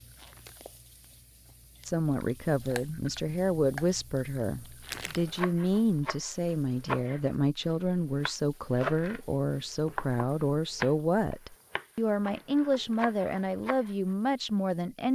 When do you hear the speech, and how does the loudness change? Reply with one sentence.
The speech can be heard from 1.9 to 15.0 s, at a steady volume.